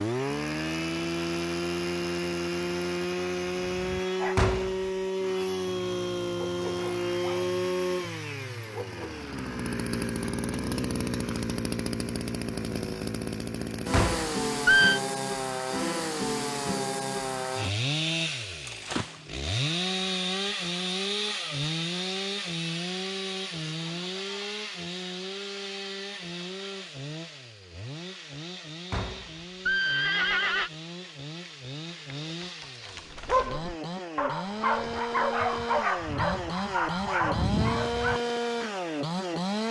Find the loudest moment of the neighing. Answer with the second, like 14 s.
15 s.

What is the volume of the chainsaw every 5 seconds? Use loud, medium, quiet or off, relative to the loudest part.
loud, loud, loud, loud, loud, medium, medium, loud.